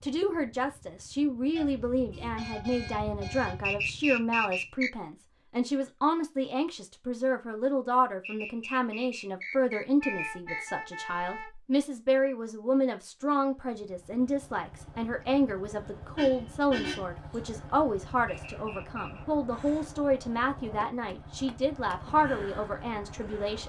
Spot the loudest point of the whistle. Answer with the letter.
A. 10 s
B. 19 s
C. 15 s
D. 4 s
D.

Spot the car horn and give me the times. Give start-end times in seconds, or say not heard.
1.6-3.8, 10.0-11.7, 16.1-17.1.